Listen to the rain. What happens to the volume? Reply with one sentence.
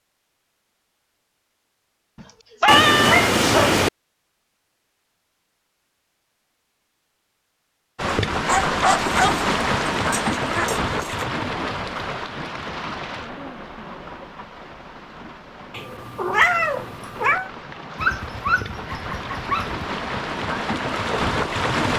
The loudness of the rain goes down, then up.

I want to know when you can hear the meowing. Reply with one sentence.
The meowing can be heard from 2.6 to 3.9 s and from 15.8 to 17.5 s.